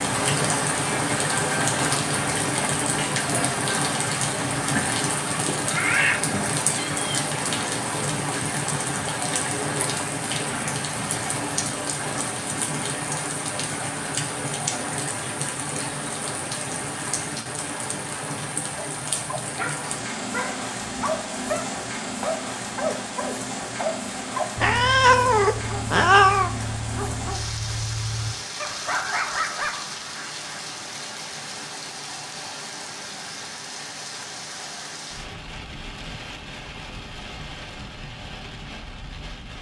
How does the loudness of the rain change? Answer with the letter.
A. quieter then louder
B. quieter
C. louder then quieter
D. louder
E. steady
B.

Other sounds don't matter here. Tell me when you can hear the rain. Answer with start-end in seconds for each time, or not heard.
0.0-39.5.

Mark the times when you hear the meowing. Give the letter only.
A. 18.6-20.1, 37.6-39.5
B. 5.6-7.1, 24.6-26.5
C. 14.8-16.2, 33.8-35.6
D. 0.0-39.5
B.